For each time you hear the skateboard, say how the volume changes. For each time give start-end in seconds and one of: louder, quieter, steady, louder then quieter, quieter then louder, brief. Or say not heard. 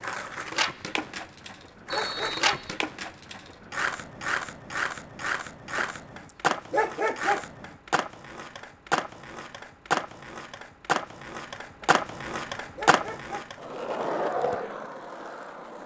0.0-15.8 steady.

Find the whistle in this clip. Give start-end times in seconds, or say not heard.
1.9-2.8.